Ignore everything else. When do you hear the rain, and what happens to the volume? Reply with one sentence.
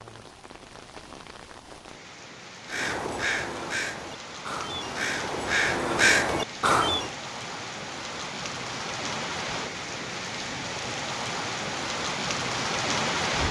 You can hear the rain from 0.0 to 13.4 s, getting louder.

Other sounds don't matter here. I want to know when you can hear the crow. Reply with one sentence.
You can hear the crow from 2.6 to 7.2 s.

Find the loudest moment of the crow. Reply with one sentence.
The volume of the crow peaks at 6 seconds.